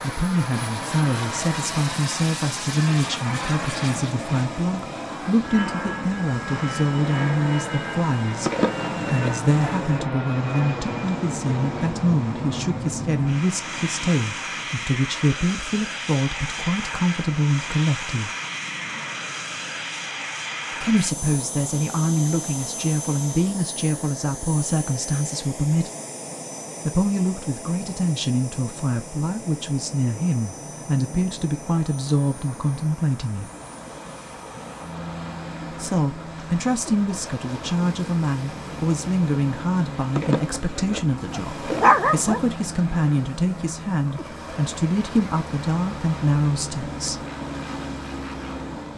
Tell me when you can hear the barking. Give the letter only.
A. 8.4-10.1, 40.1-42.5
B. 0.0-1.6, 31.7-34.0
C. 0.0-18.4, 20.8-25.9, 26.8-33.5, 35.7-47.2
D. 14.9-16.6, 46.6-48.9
A.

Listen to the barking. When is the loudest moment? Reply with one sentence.
The loudest moment of the barking is at 42 seconds.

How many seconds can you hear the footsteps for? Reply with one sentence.
You can't hear the footsteps here.